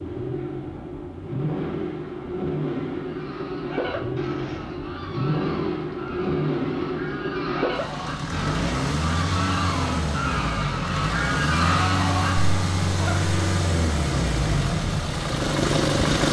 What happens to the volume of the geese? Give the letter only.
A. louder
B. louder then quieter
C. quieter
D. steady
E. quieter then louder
A.